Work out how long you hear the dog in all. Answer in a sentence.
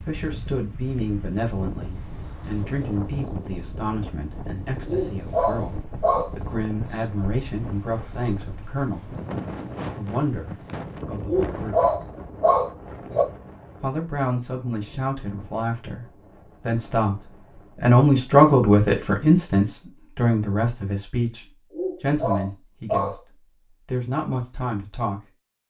You can hear the dog for 5 seconds altogether.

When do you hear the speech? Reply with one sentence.
You can hear the speech from 0.0 to 9.2 s, from 9.9 to 11.8 s, from 13.8 to 16.1 s and from 16.6 to 25.2 s.